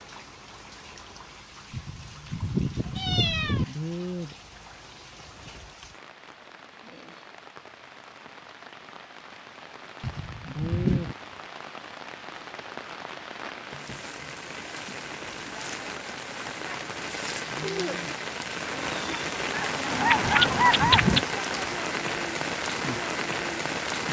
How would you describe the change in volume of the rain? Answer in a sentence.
The volume of the rain goes up.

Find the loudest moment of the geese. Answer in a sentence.
The volume of the geese peaks at 21 seconds.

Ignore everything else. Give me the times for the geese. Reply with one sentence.
You can hear the geese from 18.8 to 21.2 s.